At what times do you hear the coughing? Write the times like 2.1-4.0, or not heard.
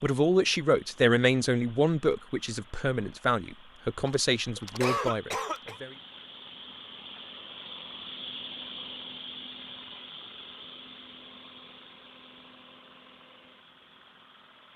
4.0-5.8.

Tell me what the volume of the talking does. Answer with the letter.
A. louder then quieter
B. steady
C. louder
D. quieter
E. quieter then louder
D.